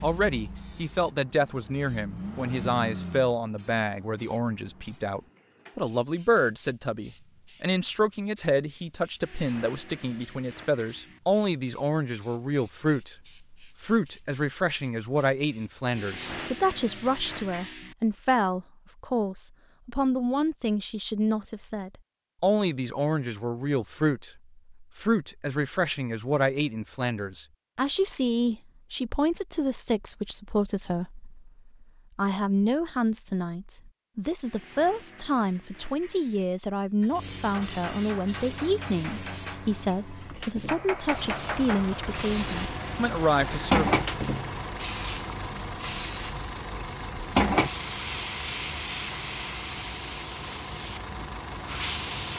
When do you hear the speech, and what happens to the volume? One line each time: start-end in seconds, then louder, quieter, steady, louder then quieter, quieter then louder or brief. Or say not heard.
0.0-43.9 steady.